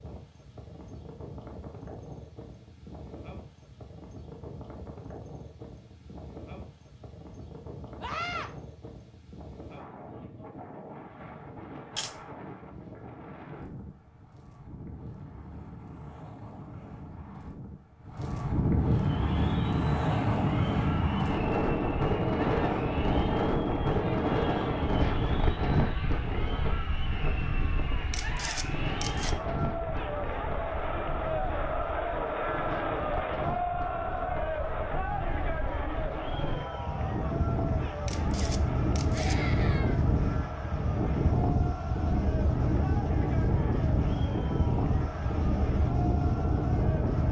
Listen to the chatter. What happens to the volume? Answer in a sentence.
The volume of the chatter goes up, then down.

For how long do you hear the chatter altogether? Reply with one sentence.
The chatter can be heard for 28 seconds in total.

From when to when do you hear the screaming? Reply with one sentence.
The screaming can be heard from 8.0 to 8.5 s and from 39.1 to 40.0 s.